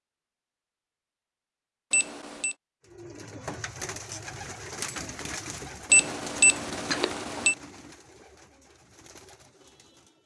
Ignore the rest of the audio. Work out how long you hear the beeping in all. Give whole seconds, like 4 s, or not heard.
2 s.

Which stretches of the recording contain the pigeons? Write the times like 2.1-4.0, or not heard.
2.9-10.2.